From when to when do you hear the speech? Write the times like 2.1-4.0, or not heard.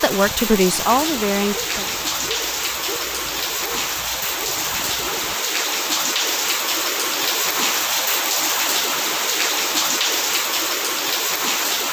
0.0-1.9.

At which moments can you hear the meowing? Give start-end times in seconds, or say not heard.
not heard.